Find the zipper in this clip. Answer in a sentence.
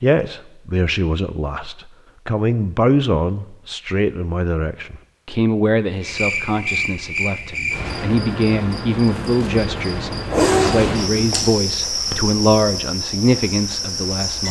The zipper can be heard from 10.3 to 11.5 s.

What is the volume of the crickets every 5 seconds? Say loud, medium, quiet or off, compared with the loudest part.
off, loud, loud.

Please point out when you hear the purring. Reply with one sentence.
The purring can't be heard in this clip.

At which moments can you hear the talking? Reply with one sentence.
You can hear the talking from 0.0 to 14.4 s.